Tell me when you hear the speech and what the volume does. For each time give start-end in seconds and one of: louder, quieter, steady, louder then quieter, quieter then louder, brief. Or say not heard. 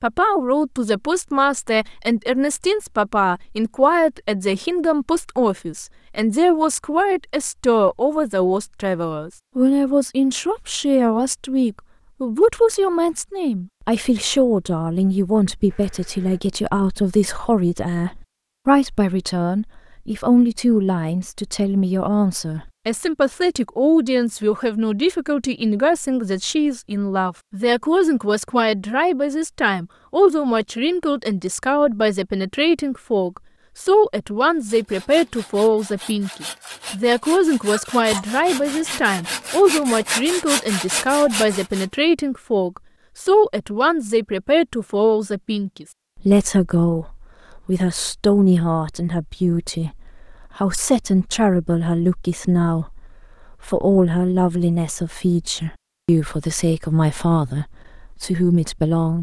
0.0-59.1 steady.